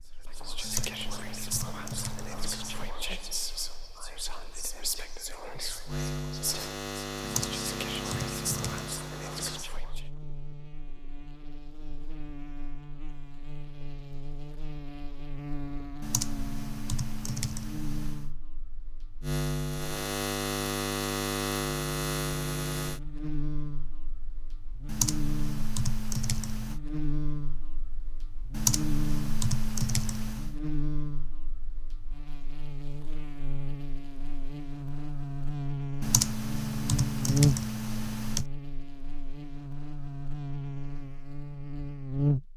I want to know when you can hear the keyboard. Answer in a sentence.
The keyboard can be heard from 0.6 to 2.9 s, from 7.2 to 8.9 s, from 16.0 to 18.3 s, from 24.9 to 26.8 s, from 28.5 to 30.6 s and from 36.0 to 38.5 s.